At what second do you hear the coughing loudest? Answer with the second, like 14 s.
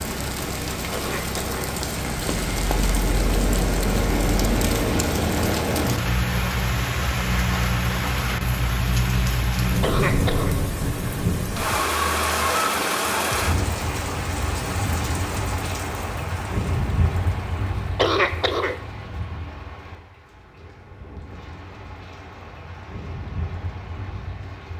18 s.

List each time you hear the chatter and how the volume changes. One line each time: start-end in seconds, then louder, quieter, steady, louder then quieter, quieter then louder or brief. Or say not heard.
not heard.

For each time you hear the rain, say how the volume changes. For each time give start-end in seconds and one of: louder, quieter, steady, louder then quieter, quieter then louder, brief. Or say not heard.
0.0-24.7 quieter.